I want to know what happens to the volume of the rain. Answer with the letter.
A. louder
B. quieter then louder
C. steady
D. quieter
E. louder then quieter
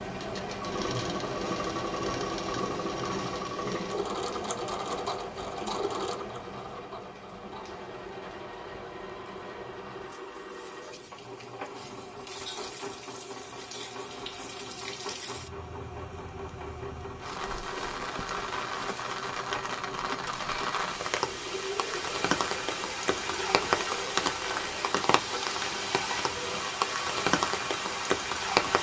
B.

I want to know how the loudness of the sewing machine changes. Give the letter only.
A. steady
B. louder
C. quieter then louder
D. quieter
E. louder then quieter
D.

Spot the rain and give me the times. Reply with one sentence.
The rain can be heard from 0.0 to 28.7 s.